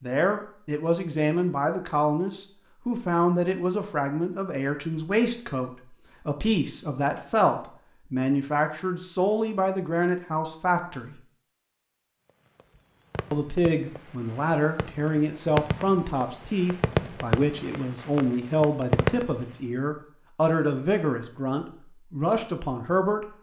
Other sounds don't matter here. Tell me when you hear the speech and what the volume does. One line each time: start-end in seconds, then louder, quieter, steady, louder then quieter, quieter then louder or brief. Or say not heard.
0.0-11.2 steady
13.3-23.2 steady.